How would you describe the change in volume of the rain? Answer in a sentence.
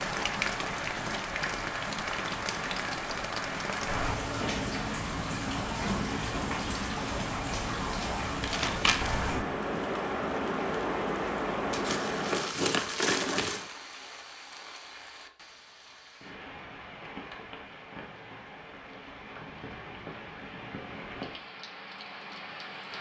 The loudness of the rain goes down.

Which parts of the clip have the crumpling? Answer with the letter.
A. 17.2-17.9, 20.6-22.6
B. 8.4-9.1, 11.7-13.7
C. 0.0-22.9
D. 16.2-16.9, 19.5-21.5
B.